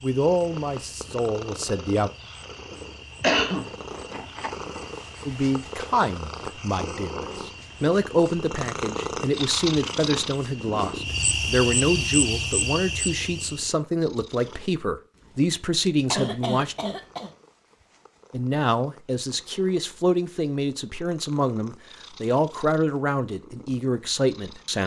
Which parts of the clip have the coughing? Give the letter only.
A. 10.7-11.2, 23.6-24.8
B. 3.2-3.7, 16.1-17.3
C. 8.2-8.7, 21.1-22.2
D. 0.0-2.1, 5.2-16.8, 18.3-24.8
B.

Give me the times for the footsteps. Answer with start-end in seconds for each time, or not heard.
not heard.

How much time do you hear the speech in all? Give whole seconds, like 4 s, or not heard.
20 s.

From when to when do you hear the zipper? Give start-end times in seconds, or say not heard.
not heard.